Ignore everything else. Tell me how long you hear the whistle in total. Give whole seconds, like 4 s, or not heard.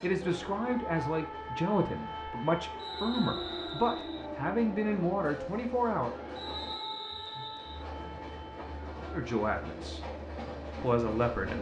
3 s.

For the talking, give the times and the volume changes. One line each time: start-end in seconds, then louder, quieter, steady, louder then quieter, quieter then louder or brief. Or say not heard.
0.0-6.1 steady
9.1-10.0 brief
10.8-11.5 brief.